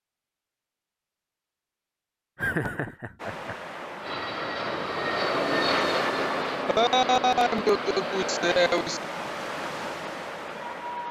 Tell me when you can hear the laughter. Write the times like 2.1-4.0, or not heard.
2.4-3.5, 6.7-9.1.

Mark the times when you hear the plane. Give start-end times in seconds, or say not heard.
4.0-8.9.